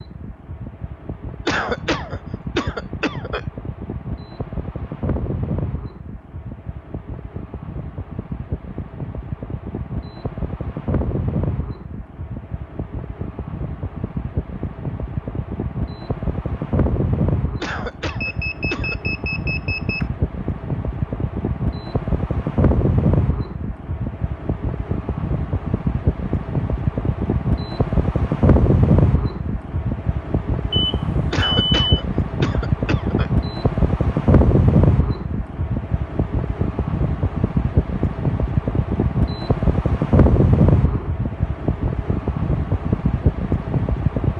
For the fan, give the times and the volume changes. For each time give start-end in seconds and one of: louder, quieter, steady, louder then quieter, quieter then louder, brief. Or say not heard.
0.0-44.3 louder.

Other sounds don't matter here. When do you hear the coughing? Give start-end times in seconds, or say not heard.
1.4-3.4, 17.6-18.9, 31.3-33.3.